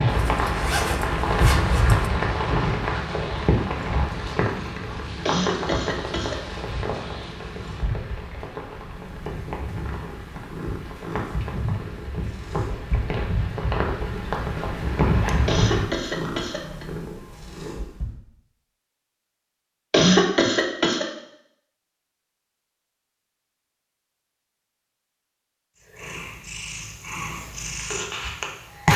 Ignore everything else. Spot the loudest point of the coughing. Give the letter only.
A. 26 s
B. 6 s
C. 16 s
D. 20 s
D.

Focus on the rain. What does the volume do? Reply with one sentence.
The volume of the rain goes down, then up.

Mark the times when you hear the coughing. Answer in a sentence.
The coughing can be heard from 5.2 to 6.3 s, from 15.4 to 16.9 s and from 19.9 to 21.1 s.